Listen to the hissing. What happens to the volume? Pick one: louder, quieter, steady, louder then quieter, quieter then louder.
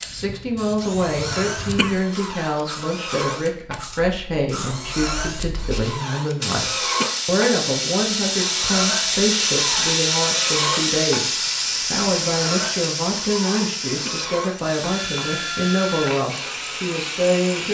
louder then quieter.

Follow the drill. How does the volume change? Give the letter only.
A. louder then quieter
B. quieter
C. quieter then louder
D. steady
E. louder
D.